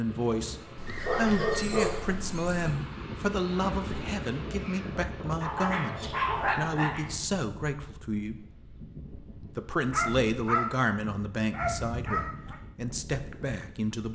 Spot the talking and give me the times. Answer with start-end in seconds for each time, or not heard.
0.0-8.5, 9.6-14.1.